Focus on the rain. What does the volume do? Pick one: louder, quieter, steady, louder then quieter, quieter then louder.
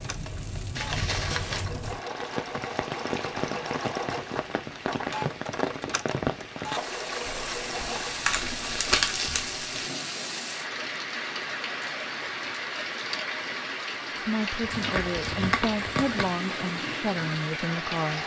steady.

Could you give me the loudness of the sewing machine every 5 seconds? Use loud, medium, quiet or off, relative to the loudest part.
loud, loud, off, medium.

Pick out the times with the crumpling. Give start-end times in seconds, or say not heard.
0.8-1.6, 7.2-9.9, 14.6-16.2.